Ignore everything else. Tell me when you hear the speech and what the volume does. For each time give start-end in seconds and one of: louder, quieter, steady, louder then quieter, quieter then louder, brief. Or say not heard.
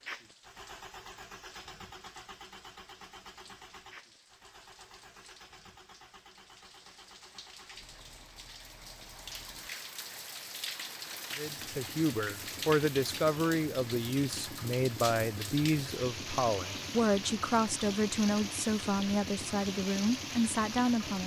11.3-21.2 steady.